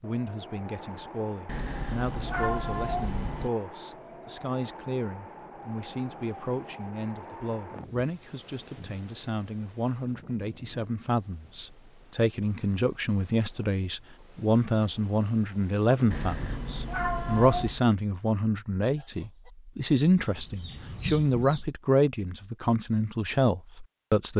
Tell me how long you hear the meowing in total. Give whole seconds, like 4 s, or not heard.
4 s.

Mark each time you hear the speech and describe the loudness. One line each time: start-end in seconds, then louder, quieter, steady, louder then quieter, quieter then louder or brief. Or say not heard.
0.0-24.3 louder.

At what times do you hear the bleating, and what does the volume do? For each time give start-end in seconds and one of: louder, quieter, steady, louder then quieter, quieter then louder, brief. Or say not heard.
not heard.